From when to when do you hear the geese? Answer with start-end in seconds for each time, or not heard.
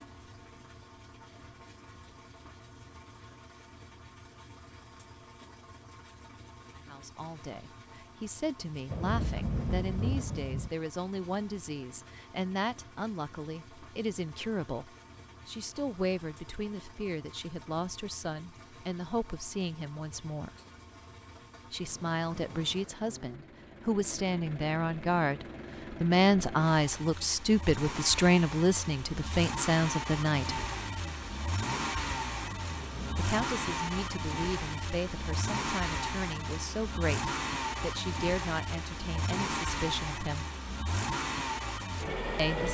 not heard.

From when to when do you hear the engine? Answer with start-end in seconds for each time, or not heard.
0.0-42.6.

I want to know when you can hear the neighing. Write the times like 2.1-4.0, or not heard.
not heard.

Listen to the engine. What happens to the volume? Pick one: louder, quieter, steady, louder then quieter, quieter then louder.
louder.